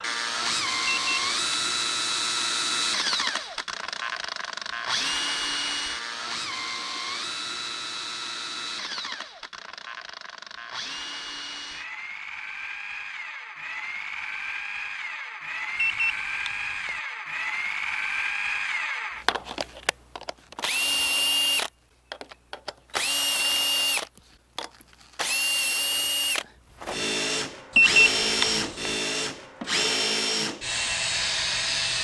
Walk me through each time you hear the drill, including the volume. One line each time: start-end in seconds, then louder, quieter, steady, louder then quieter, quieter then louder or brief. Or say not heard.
0.0-31.9 quieter then louder.